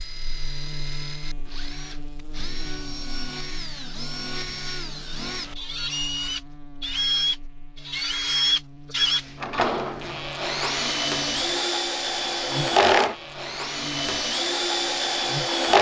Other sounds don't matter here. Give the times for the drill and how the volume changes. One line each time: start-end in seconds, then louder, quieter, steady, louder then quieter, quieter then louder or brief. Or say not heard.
0.0-15.7 louder.